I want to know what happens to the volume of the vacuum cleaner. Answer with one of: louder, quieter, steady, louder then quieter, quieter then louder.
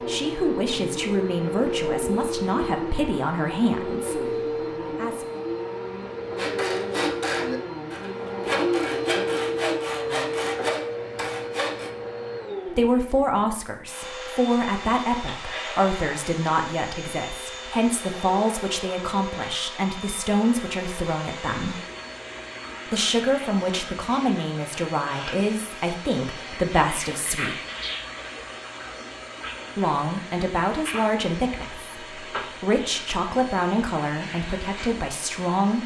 quieter.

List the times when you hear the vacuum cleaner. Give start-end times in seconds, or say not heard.
0.0-35.8.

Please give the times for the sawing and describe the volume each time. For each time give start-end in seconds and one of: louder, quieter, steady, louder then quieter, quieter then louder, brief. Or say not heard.
6.3-11.9 steady.